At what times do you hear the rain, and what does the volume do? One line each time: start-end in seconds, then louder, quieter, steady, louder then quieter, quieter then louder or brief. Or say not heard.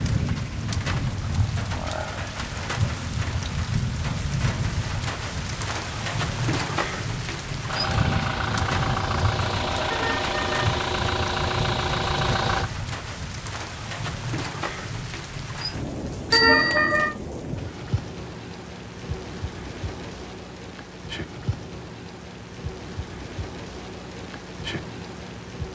0.0-25.7 quieter.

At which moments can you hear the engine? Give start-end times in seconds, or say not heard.
7.7-12.7.